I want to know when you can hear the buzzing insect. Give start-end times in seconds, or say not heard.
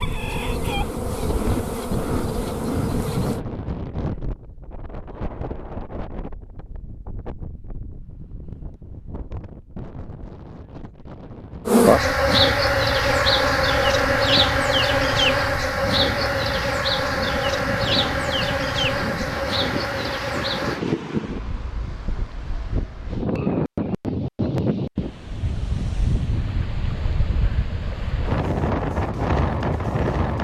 0.0-3.4, 11.7-20.8.